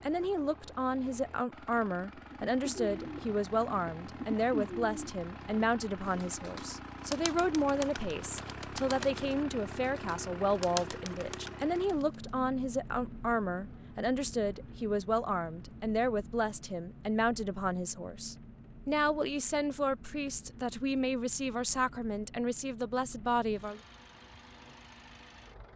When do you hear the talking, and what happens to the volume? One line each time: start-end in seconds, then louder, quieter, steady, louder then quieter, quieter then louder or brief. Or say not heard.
0.0-23.8 steady.